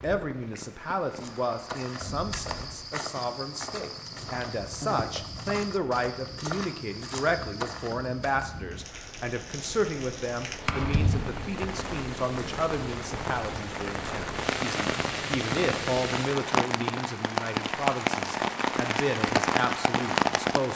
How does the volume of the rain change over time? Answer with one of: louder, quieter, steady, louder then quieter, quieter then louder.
louder.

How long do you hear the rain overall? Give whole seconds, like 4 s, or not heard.
21 s.